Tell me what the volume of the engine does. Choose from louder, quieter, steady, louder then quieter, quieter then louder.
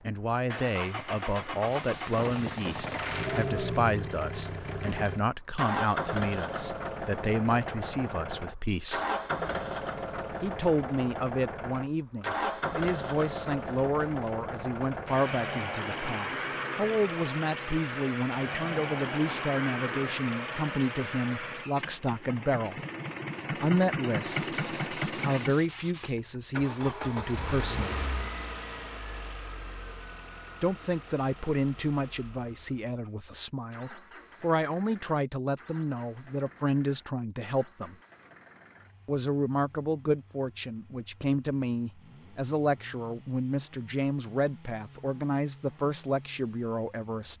quieter.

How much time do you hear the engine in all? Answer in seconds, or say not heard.
47 s.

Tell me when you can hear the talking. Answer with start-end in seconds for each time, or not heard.
0.0-9.1, 10.4-22.8, 23.6-28.1, 30.6-38.0, 39.0-47.3.